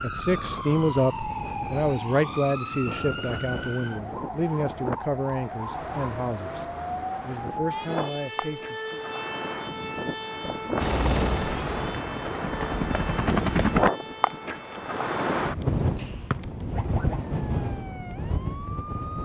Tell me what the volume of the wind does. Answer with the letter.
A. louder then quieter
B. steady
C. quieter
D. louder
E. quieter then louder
D.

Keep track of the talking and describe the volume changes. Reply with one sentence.
The volume of the talking goes down.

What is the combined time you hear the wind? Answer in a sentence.
You can hear the wind for 19 seconds altogether.